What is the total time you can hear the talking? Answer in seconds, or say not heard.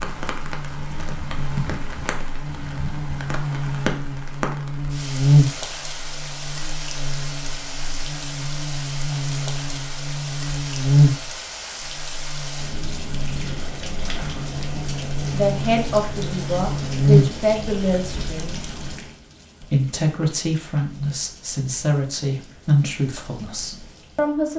8 s.